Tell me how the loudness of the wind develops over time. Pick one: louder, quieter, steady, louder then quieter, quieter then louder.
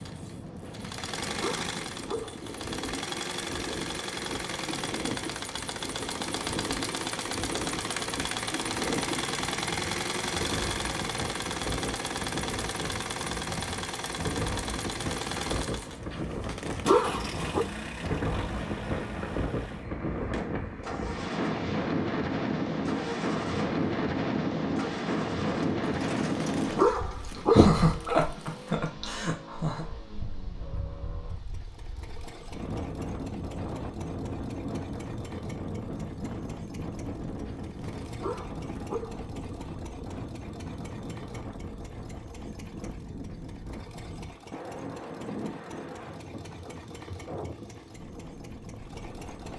louder then quieter.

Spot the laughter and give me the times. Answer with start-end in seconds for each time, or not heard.
27.5-29.9.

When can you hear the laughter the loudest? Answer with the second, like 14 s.
28 s.